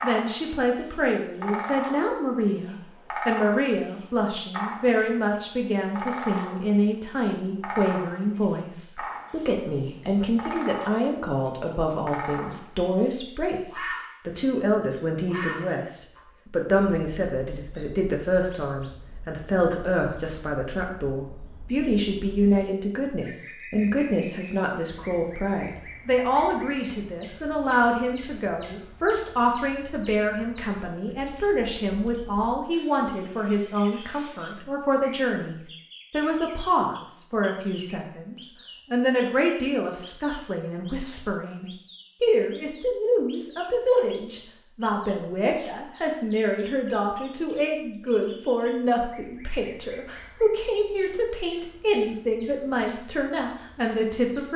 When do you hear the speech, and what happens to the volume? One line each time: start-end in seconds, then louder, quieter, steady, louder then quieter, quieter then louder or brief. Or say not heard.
0.0-54.5 steady.